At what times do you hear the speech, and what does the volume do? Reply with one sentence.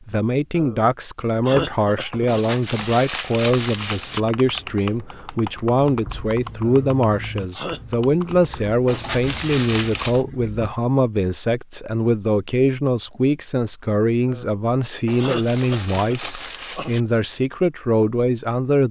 You can hear the speech from 0.1 to 18.8 s, at a steady volume.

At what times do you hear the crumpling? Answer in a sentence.
You can hear the crumpling from 2.2 to 4.2 s, from 8.8 to 10.2 s and from 15.1 to 17.1 s.